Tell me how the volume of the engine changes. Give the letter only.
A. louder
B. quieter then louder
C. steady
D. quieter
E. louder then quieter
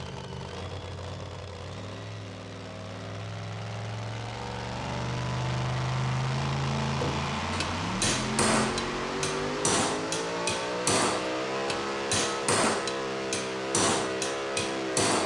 A.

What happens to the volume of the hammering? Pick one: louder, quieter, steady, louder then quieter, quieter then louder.
steady.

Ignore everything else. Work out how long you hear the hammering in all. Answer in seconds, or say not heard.
8 s.